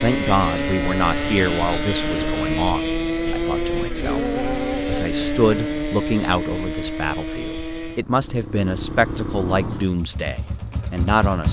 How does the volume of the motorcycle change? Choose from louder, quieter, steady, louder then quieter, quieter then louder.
quieter.